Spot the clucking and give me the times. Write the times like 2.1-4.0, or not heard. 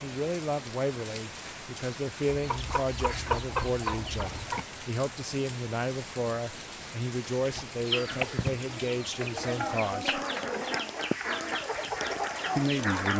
2.3-4.7, 7.5-13.1.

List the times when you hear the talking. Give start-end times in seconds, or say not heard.
0.0-10.2, 12.6-13.1.